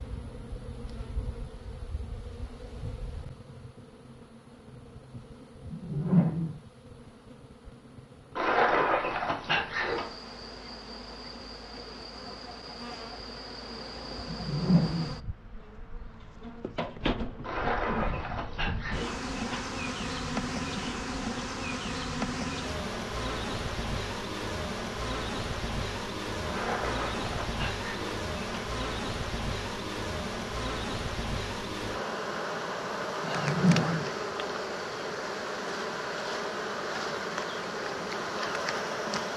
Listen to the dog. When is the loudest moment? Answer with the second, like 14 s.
9 s.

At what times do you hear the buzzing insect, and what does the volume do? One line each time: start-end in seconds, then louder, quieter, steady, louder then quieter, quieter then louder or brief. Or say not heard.
0.0-39.3 louder.